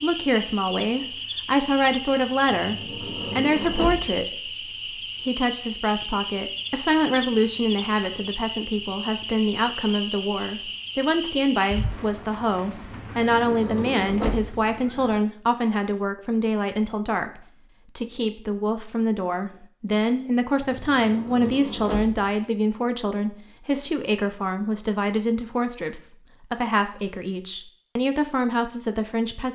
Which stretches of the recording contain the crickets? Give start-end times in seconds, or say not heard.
0.0-15.2.